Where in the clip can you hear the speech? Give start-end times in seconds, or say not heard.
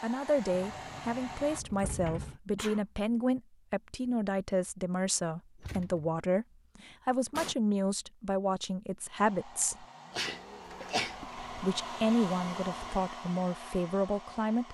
0.0-9.8, 11.2-14.6.